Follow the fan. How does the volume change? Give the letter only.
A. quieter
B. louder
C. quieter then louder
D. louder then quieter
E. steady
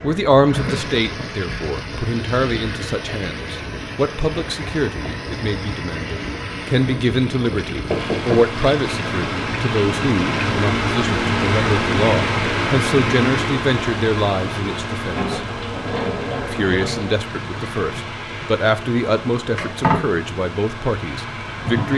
D.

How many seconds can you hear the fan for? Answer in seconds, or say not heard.
22 s.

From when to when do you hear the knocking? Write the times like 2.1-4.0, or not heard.
7.9-8.5.